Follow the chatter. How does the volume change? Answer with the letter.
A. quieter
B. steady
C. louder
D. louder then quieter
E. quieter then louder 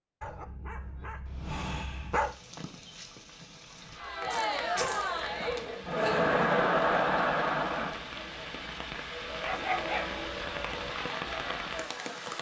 D.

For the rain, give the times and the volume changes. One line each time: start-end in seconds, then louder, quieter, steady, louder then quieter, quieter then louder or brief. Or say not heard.
2.1-12.3 louder.